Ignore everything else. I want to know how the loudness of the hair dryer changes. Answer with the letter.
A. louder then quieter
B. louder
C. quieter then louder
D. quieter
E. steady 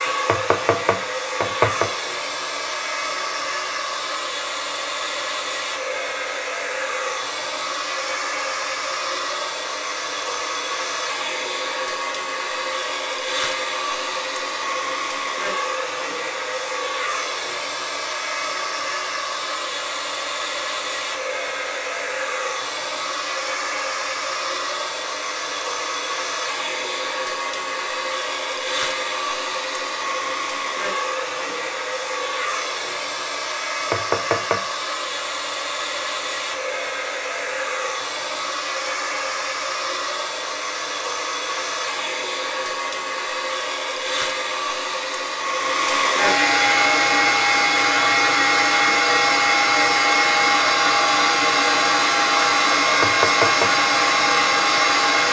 B.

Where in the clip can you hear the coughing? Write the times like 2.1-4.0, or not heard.
not heard.